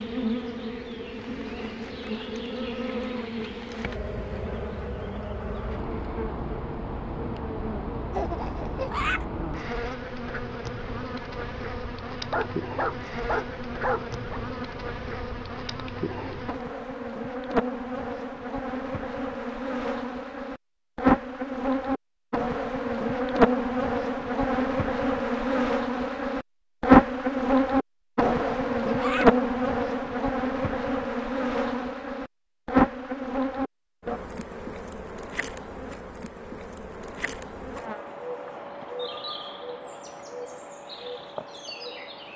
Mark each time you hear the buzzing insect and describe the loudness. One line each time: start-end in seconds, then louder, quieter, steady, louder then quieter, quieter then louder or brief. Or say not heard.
0.0-42.3 louder then quieter.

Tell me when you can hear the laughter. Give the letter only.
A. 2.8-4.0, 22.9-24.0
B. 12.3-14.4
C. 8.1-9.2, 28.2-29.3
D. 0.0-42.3
C.